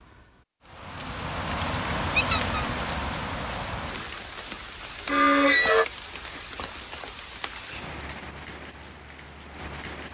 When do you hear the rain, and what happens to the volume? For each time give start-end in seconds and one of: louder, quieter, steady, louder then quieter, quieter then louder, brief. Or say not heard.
0.0-10.0 quieter.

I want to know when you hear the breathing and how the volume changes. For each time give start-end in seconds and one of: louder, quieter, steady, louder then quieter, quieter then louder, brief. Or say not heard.
not heard.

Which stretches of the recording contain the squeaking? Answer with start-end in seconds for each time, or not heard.
2.1-2.6, 5.0-5.8.